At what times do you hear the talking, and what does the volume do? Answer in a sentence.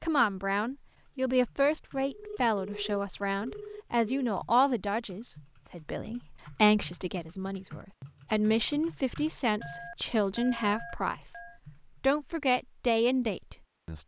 You can hear the talking from 0.0 to 11.4 s, at a steady volume; and briefly from 12.0 to 14.0 s.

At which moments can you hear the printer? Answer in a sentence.
The printer can't be heard in this clip.